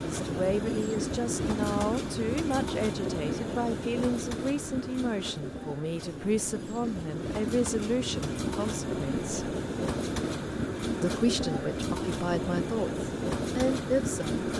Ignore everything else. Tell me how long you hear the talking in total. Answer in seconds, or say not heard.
13 s.